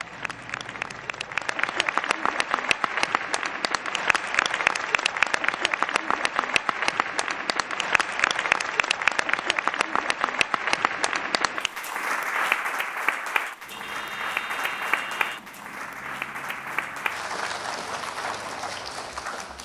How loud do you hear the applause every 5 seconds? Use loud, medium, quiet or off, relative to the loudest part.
loud, loud, loud, medium.